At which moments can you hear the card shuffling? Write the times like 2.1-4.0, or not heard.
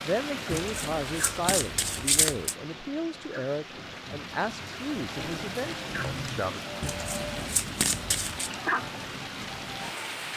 0.5-2.5, 6.8-8.5.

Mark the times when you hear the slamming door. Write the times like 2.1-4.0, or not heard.
not heard.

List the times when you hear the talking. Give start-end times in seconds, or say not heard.
0.0-6.6.